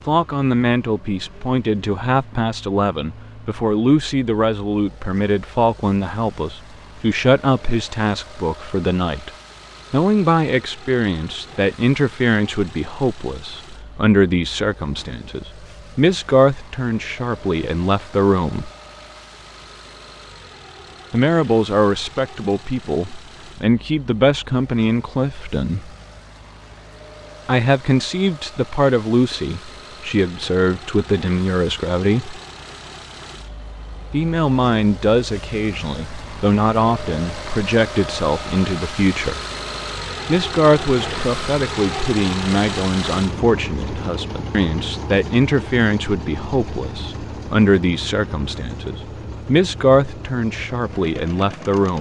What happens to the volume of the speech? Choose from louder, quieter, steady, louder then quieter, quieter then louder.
steady.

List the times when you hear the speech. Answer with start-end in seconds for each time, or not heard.
0.1-9.3, 9.9-18.7, 21.1-25.9, 27.4-32.4, 34.1-39.4, 40.2-51.9.